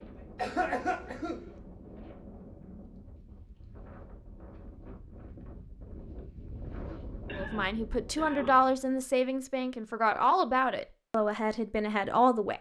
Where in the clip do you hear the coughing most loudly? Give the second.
1 s.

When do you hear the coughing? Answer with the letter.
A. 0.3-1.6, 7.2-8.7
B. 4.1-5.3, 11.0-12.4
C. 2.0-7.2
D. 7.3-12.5
A.